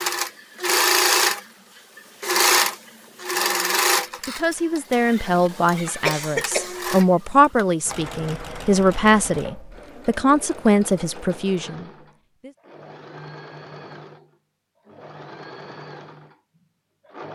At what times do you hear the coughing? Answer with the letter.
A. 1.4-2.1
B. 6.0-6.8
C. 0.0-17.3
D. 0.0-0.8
B.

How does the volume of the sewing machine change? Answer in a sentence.
The loudness of the sewing machine goes down.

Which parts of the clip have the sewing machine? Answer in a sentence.
You can hear the sewing machine from 0.0 to 17.3 s.